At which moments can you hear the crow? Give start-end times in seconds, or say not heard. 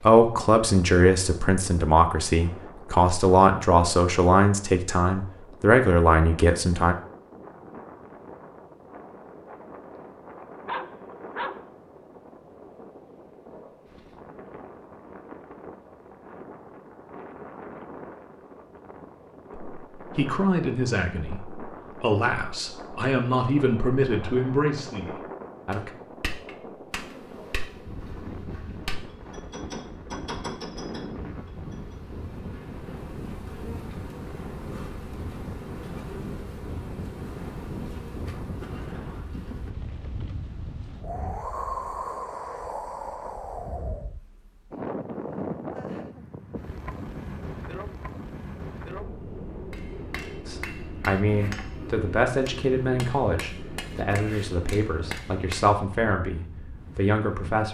not heard.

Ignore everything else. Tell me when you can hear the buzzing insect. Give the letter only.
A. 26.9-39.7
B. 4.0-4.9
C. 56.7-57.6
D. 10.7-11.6
A.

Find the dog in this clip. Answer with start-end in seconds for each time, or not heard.
10.7-11.6.